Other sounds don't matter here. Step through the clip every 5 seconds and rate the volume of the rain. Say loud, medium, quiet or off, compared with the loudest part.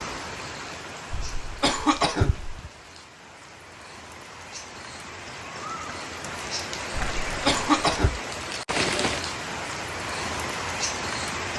medium, loud, loud.